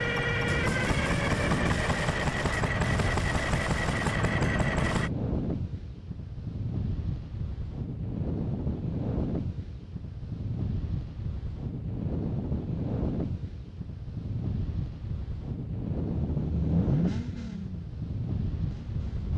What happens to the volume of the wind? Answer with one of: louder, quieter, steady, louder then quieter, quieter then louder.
steady.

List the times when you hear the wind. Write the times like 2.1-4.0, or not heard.
0.0-19.3.